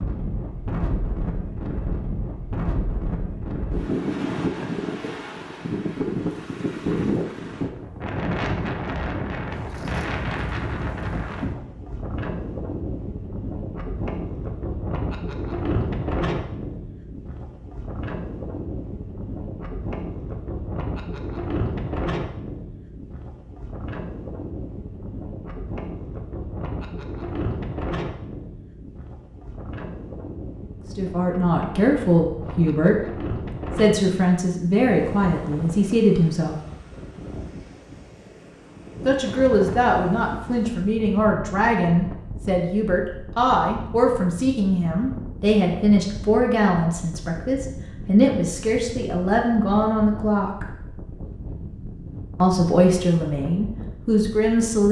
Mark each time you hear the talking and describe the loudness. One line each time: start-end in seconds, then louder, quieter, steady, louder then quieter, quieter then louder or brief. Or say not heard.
30.9-36.6 steady
39.0-50.6 steady
52.4-54.8 brief.